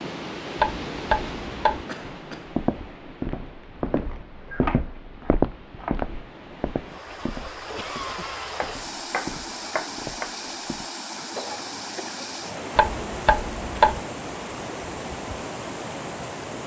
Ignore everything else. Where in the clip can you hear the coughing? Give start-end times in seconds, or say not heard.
1.9-2.5, 7.8-8.5, 11.3-12.3.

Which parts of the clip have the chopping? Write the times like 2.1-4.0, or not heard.
0.6-1.9, 4.6-6.1, 8.6-10.3, 12.8-14.0.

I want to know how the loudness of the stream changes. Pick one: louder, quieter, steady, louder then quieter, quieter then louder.
quieter then louder.